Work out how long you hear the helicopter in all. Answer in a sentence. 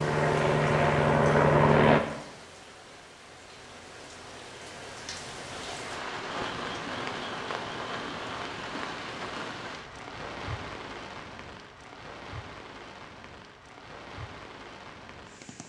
You can hear the helicopter for 2 seconds altogether.